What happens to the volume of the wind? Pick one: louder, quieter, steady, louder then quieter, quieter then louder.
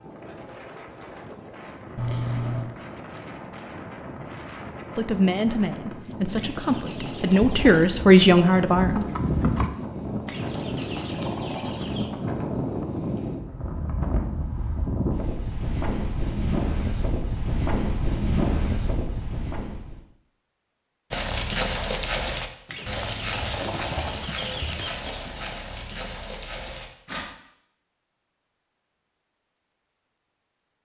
louder.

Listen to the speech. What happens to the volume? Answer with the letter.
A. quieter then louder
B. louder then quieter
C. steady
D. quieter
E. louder
E.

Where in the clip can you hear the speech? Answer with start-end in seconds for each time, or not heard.
5.0-9.1.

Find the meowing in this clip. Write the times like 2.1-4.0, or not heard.
1.9-2.7.